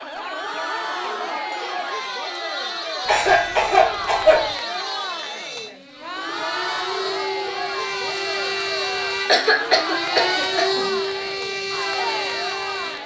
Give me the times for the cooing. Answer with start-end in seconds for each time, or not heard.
not heard.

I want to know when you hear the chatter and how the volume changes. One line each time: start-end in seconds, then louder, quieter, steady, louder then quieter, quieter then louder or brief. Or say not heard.
0.0-13.0 steady.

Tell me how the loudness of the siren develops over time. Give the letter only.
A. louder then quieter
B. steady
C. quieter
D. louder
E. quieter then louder
D.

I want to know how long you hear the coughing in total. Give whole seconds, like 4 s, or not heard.
3 s.